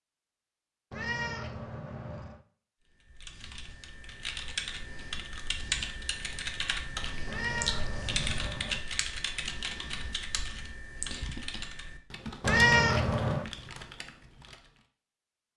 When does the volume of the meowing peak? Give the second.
13 s.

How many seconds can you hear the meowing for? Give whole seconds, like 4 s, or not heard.
4 s.